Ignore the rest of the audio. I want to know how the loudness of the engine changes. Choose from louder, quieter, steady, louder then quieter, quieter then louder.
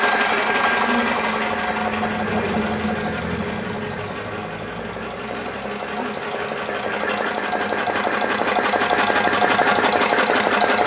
quieter then louder.